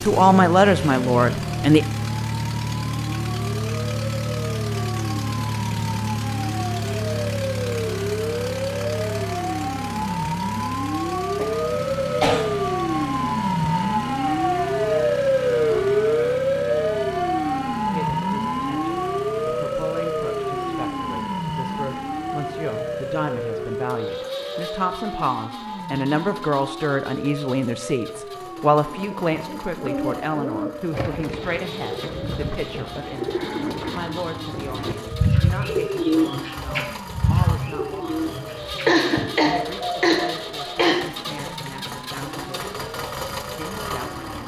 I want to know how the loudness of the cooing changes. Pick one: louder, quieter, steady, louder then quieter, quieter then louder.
louder then quieter.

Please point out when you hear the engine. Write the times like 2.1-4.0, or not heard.
0.0-44.4.